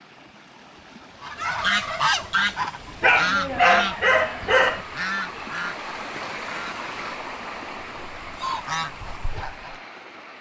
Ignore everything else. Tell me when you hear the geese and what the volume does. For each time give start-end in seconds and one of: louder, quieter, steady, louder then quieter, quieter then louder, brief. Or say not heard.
1.2-9.8 quieter then louder.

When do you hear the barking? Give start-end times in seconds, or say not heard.
3.0-4.8.